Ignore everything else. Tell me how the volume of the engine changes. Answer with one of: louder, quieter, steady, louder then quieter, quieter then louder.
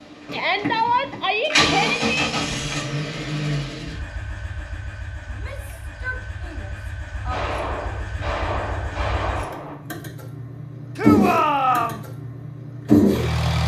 quieter then louder.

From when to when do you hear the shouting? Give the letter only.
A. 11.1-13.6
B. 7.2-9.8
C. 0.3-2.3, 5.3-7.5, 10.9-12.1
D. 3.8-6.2
C.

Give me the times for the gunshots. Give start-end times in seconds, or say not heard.
7.2-9.8.